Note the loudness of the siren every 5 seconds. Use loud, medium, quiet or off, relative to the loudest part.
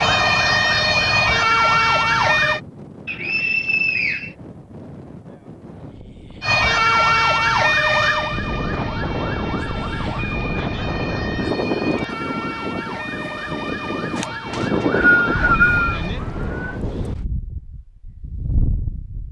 loud, loud, quiet, quiet.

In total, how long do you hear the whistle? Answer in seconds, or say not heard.
3 s.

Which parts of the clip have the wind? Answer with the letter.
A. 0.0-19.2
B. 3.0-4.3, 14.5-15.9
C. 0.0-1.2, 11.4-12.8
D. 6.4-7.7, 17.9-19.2
A.